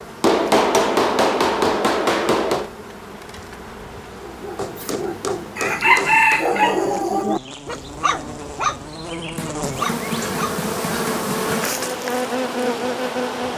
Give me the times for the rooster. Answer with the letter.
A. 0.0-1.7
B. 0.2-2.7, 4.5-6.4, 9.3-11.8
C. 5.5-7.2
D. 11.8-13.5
C.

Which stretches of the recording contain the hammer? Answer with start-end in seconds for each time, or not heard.
0.2-2.7, 4.5-6.4, 9.3-11.8.